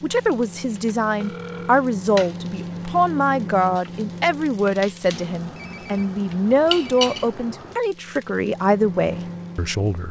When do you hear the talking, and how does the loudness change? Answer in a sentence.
You can hear the talking from 0.0 to 10.0 s, at a steady volume.